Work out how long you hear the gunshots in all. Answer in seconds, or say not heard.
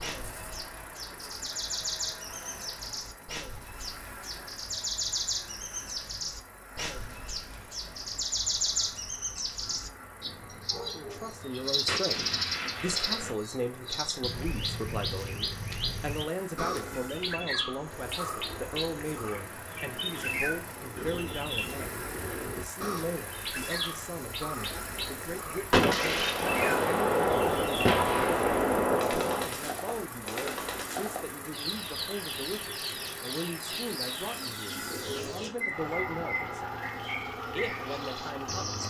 5 s.